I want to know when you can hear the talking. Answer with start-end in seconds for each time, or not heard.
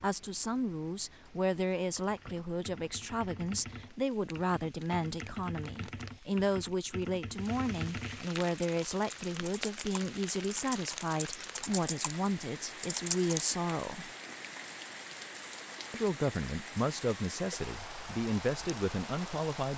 0.0-14.1, 15.9-19.7.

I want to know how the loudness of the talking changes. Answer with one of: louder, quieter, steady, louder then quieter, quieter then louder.
steady.